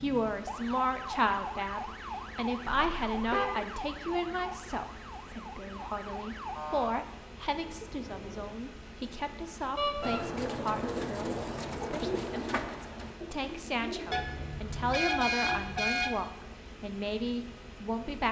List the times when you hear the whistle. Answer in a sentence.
You can't hear the whistle here.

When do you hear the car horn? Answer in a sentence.
You can hear the car horn from 2.6 to 3.5 s, from 9.8 to 10.2 s and from 14.1 to 16.1 s.